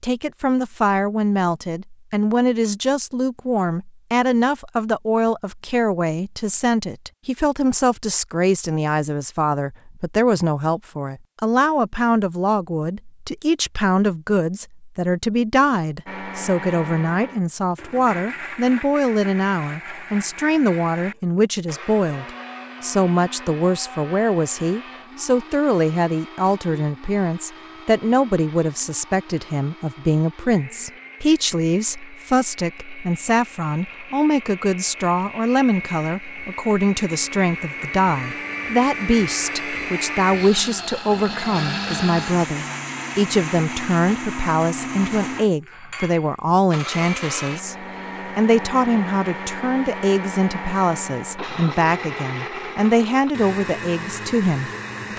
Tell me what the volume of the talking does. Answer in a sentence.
The loudness of the talking stays about the same.